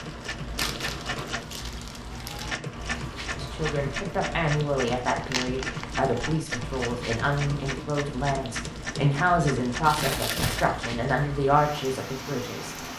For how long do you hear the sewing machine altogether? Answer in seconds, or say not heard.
11 s.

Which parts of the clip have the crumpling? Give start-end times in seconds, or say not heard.
0.6-2.5, 4.8-7.0, 9.8-10.7.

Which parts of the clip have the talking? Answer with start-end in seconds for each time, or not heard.
3.4-12.8.